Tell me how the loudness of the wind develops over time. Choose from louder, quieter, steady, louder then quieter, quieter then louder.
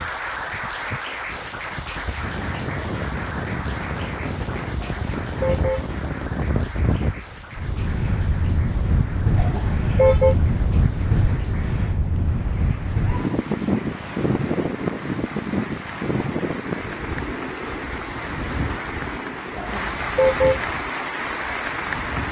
louder then quieter.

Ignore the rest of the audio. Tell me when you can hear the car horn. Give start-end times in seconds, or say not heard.
4.8-5.8, 9.3-10.3, 19.6-20.6.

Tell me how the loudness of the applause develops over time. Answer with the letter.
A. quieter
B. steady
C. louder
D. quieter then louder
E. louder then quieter
D.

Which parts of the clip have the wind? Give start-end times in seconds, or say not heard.
0.0-22.2.